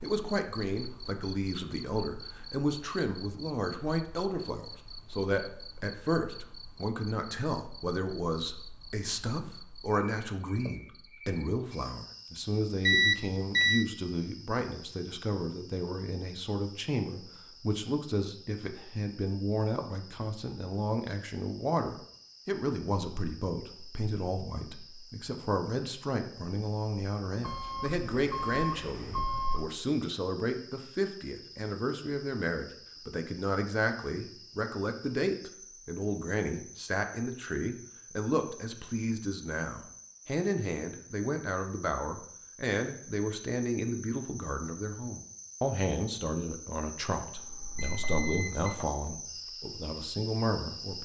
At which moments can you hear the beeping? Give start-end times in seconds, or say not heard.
12.8-13.8, 27.4-29.6, 47.4-48.9.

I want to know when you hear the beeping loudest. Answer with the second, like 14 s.
13 s.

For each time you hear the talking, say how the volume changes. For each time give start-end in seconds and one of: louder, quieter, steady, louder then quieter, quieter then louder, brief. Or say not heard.
0.0-51.0 steady.